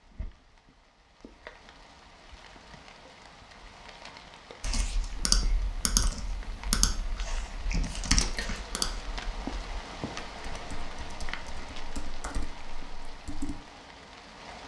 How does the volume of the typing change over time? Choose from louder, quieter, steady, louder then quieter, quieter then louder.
quieter then louder.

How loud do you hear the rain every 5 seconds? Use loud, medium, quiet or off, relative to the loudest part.
medium, loud, loud.